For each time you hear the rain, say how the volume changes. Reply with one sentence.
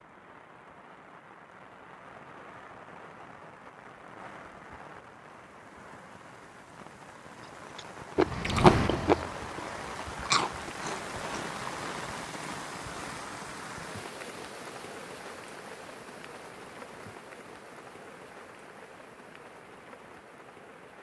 The rain can be heard from 0.0 to 20.9 s, getting louder then quieter.